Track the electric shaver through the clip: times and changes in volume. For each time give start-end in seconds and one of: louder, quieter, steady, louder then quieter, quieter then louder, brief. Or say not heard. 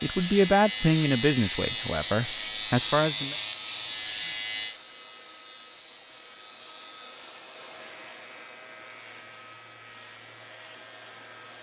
0.0-11.5 quieter.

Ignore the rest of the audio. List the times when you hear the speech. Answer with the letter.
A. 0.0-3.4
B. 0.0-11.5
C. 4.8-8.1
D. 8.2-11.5
A.